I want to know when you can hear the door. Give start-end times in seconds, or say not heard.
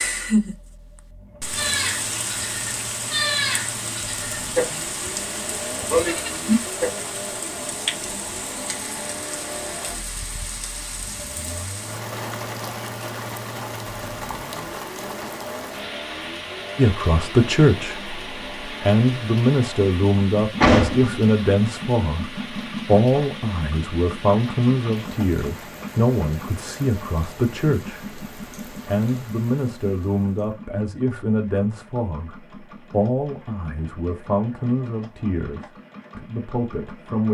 20.6-21.1.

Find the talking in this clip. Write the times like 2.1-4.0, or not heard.
16.8-37.2.